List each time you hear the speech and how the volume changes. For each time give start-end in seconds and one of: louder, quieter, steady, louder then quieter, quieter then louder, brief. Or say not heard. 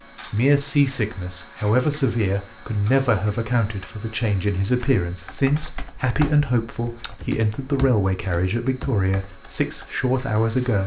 0.3-10.8 steady.